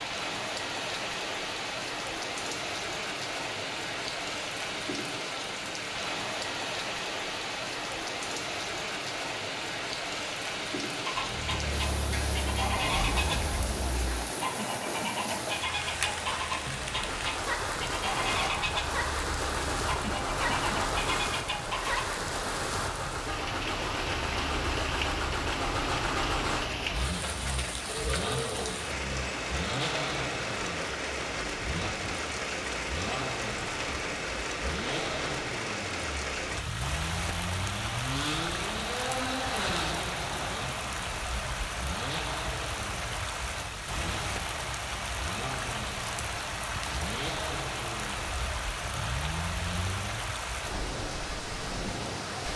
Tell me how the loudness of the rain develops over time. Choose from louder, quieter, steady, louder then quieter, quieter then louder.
steady.